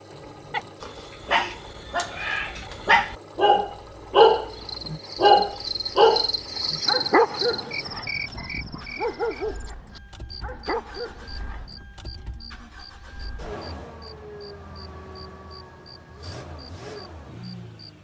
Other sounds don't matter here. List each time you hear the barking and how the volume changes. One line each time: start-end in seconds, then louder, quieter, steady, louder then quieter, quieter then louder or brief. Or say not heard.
0.1-11.8 louder then quieter.